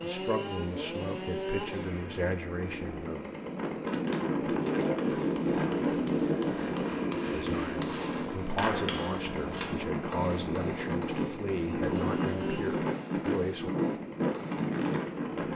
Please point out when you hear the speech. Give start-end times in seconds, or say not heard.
0.0-3.2, 7.3-13.7.